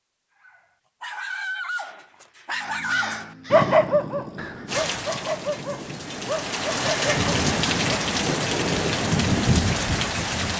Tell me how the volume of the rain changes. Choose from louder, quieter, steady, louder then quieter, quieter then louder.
louder.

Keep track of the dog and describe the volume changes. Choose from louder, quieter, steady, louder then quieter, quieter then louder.
louder then quieter.